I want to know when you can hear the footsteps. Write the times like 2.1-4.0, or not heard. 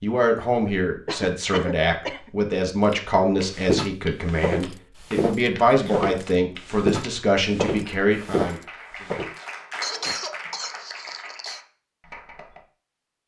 2.9-10.2.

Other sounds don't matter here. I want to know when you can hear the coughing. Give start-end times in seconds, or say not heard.
1.1-2.3, 5.7-6.3, 9.8-11.6.